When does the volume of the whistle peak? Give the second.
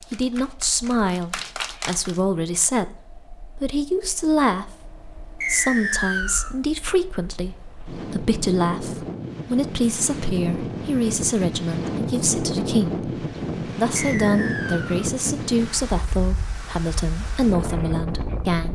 6 s.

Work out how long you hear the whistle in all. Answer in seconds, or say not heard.
2 s.